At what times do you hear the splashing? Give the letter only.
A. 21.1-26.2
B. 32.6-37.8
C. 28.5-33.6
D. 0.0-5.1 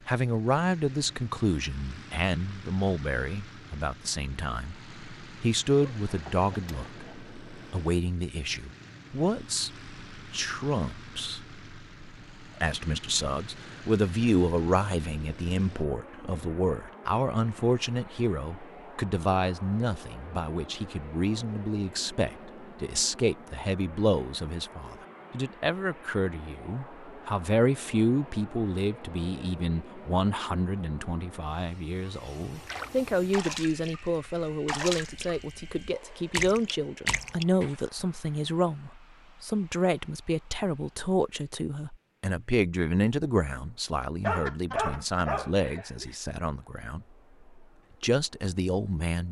B.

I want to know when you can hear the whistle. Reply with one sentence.
The whistle can't be heard in this clip.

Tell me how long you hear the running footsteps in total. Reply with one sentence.
You can't hear the running footsteps here.